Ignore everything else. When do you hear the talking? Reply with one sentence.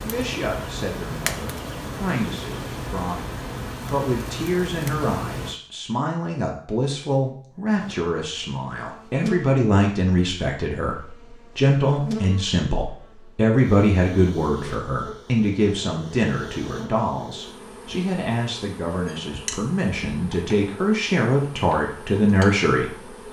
You can hear the talking from 0.0 to 23.1 s.